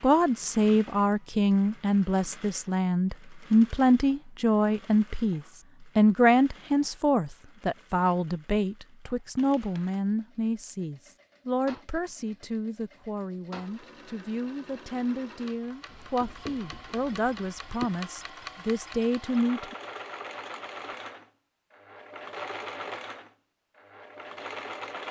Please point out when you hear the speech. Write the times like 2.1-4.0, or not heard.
0.0-19.8.